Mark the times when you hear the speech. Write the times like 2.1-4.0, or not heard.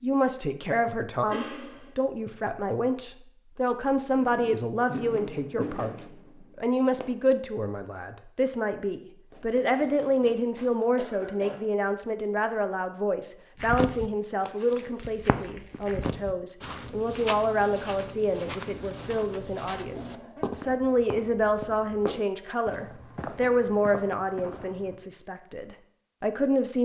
0.0-6.0, 6.5-26.7.